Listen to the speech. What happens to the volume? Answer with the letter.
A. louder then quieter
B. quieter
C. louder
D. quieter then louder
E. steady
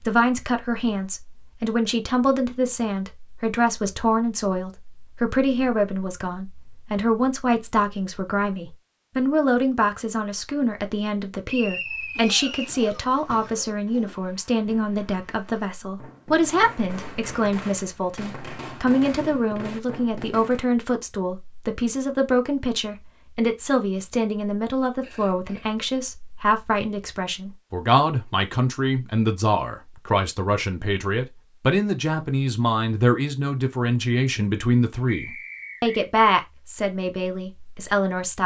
E.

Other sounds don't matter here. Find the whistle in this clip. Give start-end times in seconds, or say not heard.
11.4-12.8, 35.0-36.1.